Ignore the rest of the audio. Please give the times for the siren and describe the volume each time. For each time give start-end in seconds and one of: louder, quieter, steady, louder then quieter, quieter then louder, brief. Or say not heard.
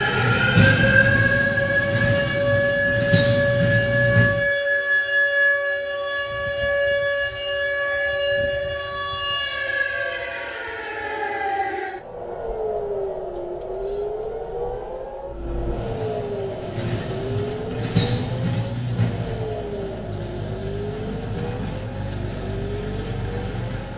0.0-23.9 quieter.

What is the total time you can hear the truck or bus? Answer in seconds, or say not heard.
13 s.